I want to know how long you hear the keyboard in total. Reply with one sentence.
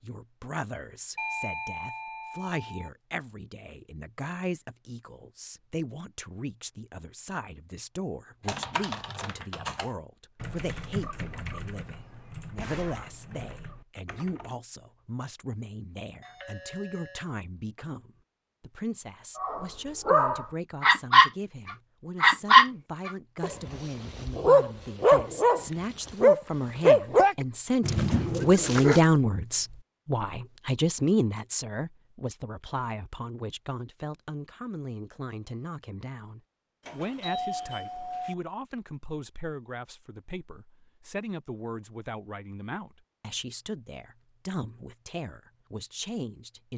The keyboard can be heard for 6 seconds in total.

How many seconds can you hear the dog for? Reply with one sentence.
You can hear the dog for 10 seconds altogether.